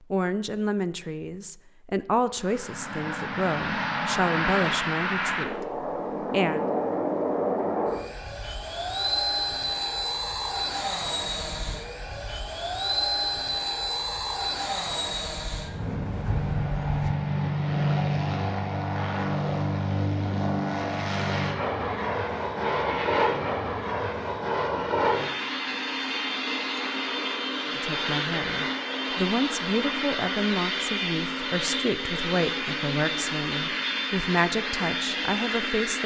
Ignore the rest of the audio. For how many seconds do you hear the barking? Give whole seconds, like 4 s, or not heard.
not heard.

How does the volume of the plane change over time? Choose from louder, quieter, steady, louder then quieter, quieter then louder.
steady.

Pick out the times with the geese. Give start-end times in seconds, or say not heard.
21.9-23.4.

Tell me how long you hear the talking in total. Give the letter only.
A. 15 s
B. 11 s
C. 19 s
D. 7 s
A.